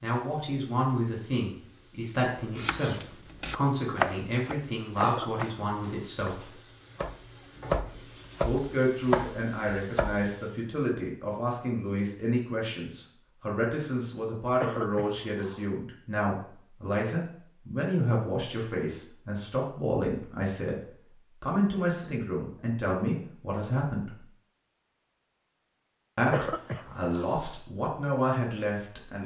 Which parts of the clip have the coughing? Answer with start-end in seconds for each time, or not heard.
5.0-6.0, 14.6-15.7, 26.3-27.4.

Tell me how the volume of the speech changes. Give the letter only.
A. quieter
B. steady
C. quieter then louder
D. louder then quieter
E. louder
B.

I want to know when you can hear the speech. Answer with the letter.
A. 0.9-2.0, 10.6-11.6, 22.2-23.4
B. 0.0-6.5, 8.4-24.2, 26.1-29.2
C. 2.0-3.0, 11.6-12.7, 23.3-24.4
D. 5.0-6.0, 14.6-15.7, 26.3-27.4
B.